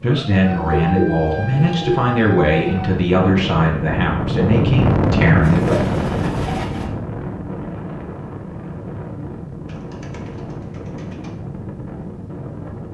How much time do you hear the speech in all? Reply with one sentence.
The speech can be heard for 6 seconds in total.